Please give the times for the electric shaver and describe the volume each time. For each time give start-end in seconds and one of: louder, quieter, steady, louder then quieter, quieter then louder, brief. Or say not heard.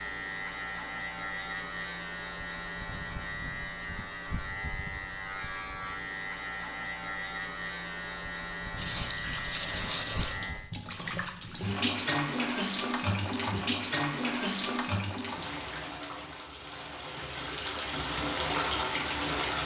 0.0-10.7 steady.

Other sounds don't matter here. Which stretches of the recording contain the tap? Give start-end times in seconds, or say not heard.
8.8-19.6.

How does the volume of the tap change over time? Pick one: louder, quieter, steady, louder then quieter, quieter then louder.
quieter then louder.